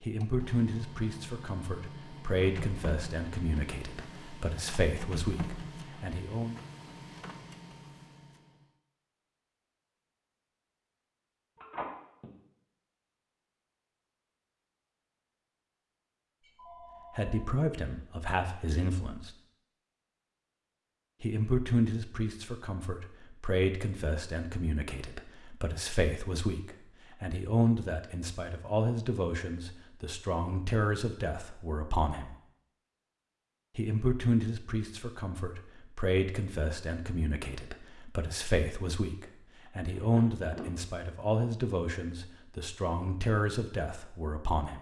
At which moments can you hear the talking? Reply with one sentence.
You can hear the talking from 0.0 to 6.5 s, from 17.1 to 19.3 s, from 21.2 to 32.4 s and from 33.8 to 44.7 s.